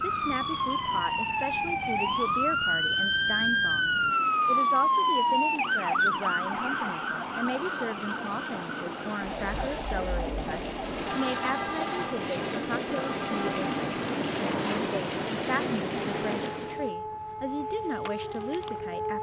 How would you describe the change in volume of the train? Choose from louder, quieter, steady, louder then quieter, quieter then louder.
louder.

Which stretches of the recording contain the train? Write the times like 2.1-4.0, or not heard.
0.0-16.9.